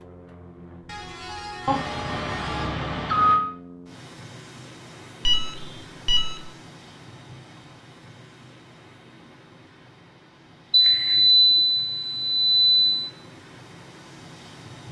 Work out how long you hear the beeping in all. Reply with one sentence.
You can hear the beeping for 5 seconds altogether.